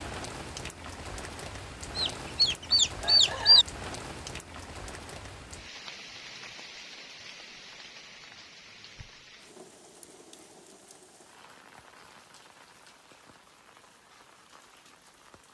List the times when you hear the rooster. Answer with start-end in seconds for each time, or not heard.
1.9-3.6.